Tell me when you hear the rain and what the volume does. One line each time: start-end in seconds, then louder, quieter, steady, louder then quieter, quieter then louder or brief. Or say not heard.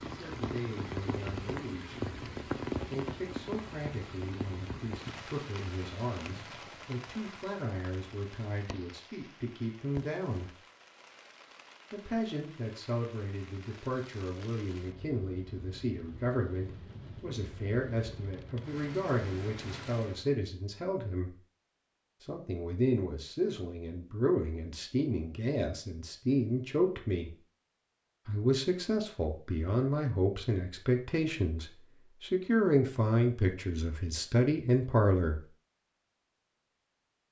0.0-20.3 quieter then louder.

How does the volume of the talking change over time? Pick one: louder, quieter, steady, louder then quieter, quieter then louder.
louder.